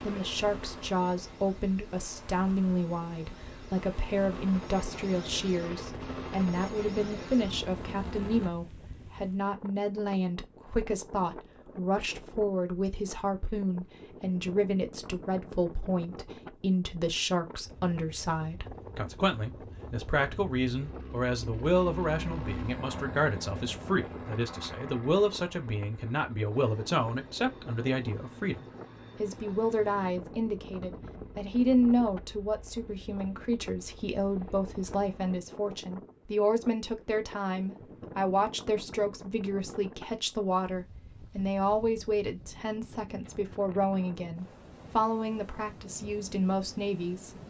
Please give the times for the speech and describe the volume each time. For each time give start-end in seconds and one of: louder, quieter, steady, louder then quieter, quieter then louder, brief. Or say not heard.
0.0-47.4 steady.